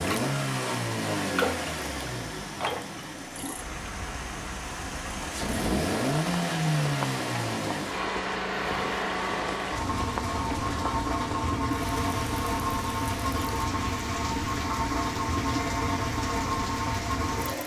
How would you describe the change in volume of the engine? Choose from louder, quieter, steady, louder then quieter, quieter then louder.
steady.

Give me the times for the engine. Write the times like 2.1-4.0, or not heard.
0.0-17.6.